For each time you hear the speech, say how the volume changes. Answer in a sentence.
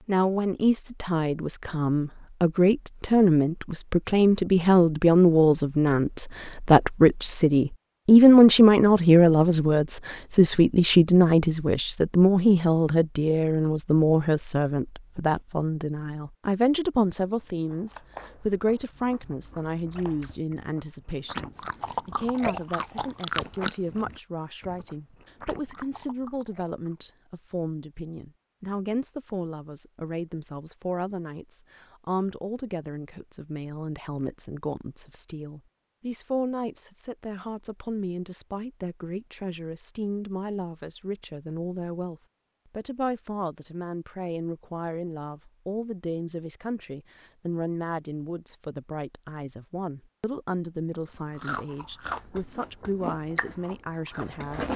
The speech can be heard from 0.1 to 54.7 s, getting quieter.